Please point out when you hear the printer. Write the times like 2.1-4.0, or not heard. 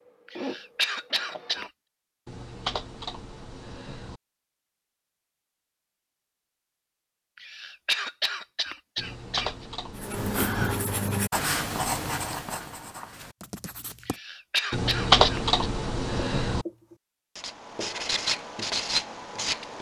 0.1-1.7.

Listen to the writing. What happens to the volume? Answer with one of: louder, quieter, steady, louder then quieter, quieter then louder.
quieter then louder.